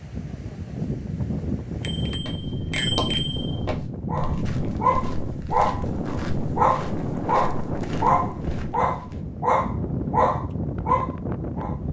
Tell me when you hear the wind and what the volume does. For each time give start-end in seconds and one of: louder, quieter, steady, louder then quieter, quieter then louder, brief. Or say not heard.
0.0-11.8 steady.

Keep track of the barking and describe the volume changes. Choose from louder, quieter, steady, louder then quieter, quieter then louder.
steady.